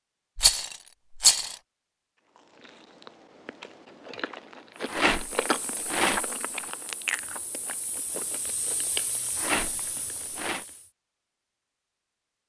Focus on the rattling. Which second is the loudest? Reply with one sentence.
The loudest moment of the rattling is at 1 second.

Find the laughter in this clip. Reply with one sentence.
The laughter can't be heard in this clip.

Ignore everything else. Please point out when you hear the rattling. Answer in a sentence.
The rattling can be heard from 0.3 to 1.6 s, from 4.8 to 6.7 s and from 9.3 to 10.7 s.